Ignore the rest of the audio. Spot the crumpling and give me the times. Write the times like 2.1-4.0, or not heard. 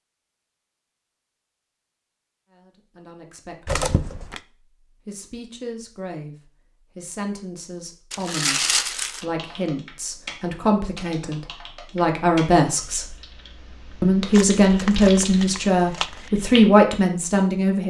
3.6-4.4, 8.1-9.2, 14.3-16.3.